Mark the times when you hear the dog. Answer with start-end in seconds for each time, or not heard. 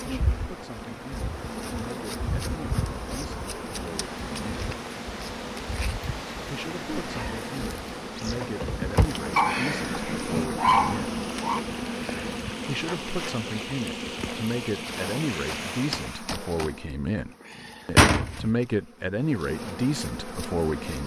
9.3-11.6.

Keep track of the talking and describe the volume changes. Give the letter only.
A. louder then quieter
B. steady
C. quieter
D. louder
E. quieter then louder
D.